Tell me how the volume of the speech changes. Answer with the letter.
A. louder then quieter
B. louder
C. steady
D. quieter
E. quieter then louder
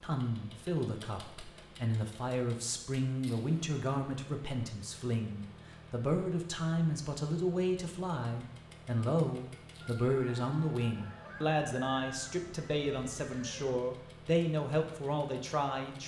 C.